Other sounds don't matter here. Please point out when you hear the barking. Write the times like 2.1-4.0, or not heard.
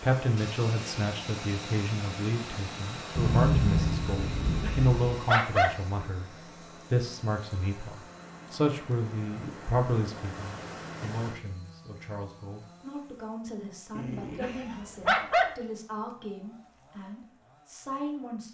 4.2-5.8, 13.9-15.5.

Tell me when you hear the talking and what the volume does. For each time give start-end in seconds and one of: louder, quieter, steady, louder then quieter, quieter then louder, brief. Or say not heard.
0.0-18.4 quieter.